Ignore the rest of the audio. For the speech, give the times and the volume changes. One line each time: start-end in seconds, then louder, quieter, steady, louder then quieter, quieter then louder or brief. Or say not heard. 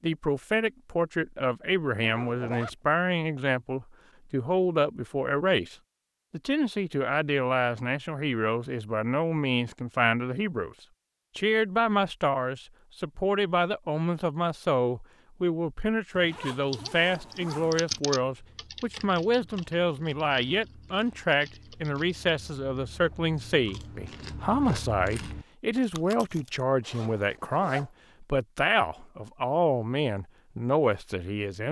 0.0-10.8 steady
11.3-31.6 steady.